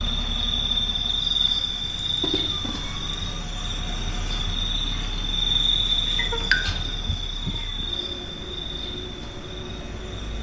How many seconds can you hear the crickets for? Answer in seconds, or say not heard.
10 s.